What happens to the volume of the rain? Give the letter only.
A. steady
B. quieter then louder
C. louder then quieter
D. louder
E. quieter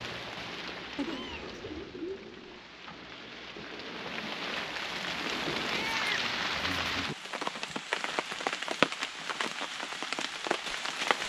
D.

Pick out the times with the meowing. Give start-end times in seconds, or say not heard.
0.9-2.6, 5.7-7.2.